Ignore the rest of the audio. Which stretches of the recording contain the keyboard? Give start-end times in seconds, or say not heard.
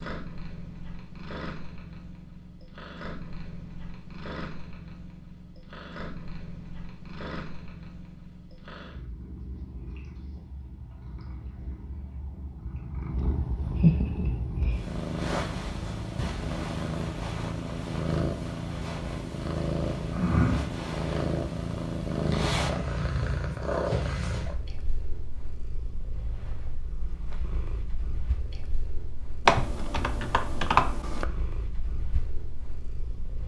29.4-31.2.